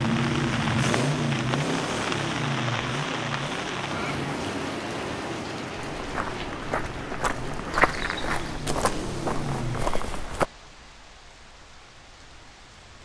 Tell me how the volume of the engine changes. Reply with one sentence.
The volume of the engine goes down, then up.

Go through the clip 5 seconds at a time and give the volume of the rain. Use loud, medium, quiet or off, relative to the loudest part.
loud, medium, quiet.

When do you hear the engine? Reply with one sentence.
The engine can be heard from 0.0 to 9.8 s.